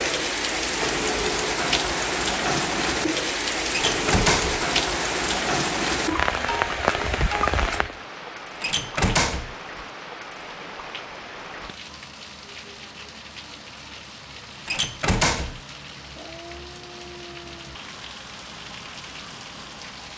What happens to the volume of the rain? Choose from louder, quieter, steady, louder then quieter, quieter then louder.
quieter.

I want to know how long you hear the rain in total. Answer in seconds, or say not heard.
20 s.